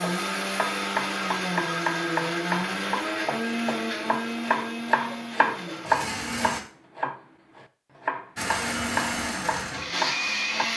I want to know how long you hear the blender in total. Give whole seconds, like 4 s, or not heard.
9 s.